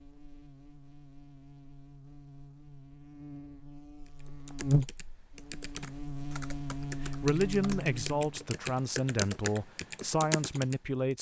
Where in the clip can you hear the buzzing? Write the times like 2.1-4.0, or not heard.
0.0-8.4.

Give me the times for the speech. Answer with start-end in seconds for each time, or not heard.
7.0-11.1.